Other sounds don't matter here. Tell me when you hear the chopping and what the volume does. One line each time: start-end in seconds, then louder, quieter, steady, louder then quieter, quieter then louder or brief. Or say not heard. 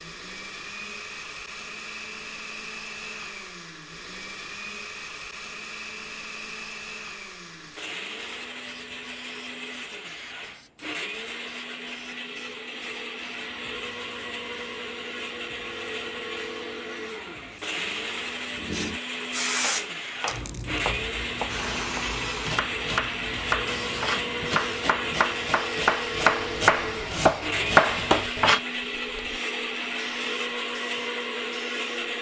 19.6-28.6 louder.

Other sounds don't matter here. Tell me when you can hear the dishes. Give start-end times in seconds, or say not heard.
not heard.